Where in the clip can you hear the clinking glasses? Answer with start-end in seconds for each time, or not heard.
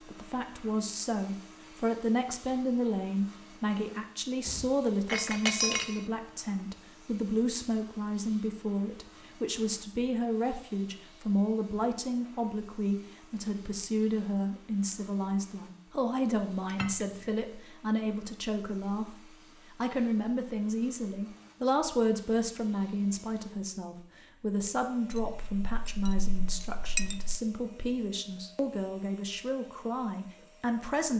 4.5-6.0, 16.6-17.4, 25.1-27.4.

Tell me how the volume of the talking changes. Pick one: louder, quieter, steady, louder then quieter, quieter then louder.
steady.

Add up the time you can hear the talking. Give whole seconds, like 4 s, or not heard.
31 s.